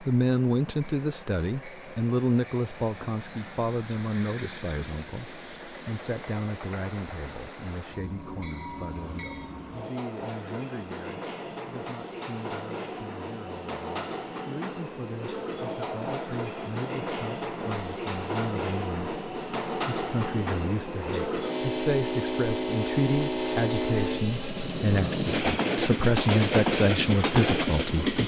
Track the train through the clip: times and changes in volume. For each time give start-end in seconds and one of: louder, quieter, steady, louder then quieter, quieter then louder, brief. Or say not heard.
0.0-28.2 louder.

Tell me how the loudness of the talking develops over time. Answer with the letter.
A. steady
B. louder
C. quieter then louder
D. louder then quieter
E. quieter
C.